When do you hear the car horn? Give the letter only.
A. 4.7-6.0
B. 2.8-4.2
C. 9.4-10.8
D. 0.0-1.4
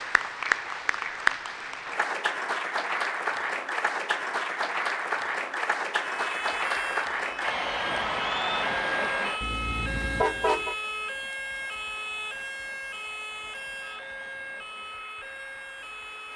C.